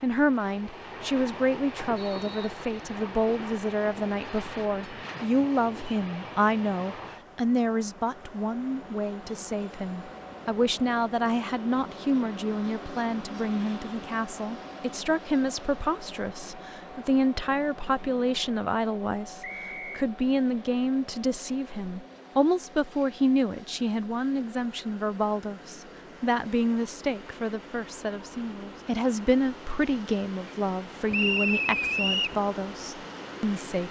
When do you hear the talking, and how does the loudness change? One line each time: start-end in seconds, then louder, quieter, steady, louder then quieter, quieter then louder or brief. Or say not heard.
0.0-33.8 steady.